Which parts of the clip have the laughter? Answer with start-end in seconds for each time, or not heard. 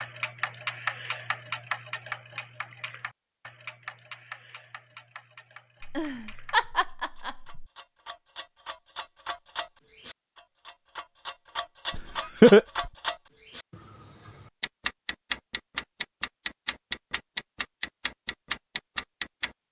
5.8-7.7, 11.9-12.9.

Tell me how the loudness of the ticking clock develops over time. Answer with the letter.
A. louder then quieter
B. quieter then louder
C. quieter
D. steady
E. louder
B.